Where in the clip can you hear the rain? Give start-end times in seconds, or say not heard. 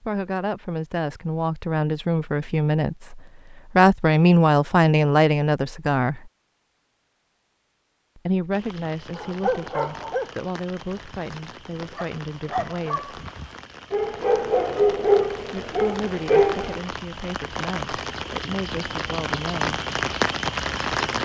8.5-21.1.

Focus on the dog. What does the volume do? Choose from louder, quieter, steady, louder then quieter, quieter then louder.
quieter then louder.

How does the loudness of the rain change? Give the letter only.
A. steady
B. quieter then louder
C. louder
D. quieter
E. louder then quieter
C.